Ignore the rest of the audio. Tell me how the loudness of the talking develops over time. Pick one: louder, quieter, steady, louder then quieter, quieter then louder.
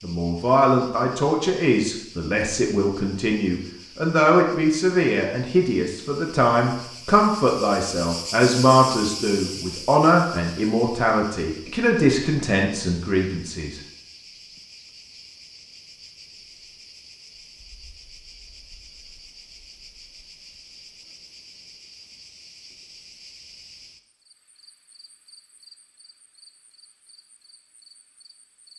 steady.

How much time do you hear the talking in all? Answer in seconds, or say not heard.
14 s.